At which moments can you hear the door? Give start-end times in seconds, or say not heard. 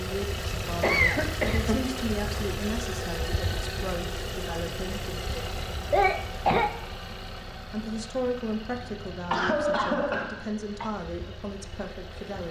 not heard.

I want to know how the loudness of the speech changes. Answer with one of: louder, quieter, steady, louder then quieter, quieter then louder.
steady.